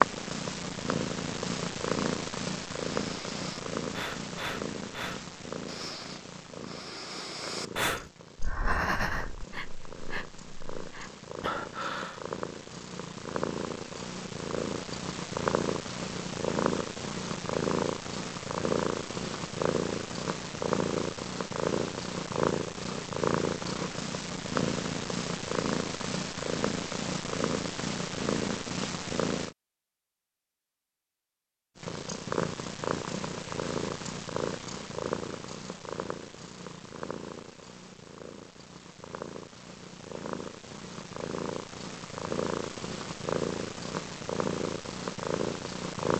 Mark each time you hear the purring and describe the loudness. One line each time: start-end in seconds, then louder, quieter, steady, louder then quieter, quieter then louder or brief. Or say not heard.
0.0-29.6 quieter then louder
31.8-46.1 quieter then louder.